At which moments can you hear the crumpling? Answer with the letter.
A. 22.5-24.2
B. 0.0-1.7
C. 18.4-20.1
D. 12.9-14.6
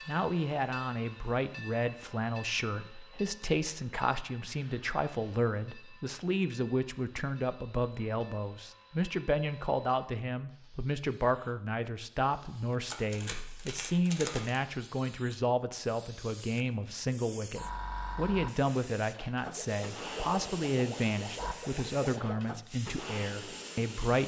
D.